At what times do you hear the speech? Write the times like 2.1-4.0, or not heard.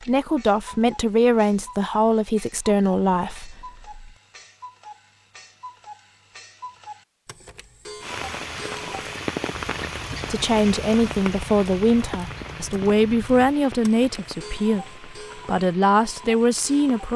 0.0-4.1, 10.3-17.1.